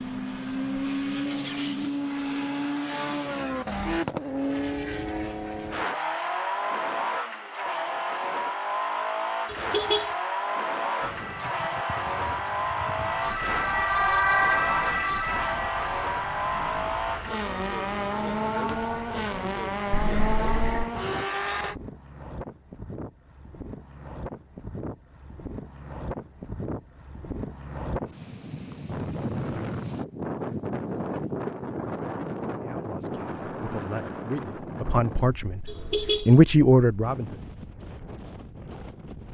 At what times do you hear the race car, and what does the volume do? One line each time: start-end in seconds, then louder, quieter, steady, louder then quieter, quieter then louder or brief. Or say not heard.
0.0-21.8 steady.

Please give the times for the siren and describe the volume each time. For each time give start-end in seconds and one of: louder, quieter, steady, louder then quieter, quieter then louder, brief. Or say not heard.
11.0-19.4 louder then quieter.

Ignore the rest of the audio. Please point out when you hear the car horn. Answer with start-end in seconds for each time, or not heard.
9.4-10.2, 19.9-20.9, 35.6-36.4.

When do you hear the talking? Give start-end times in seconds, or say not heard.
32.6-37.4.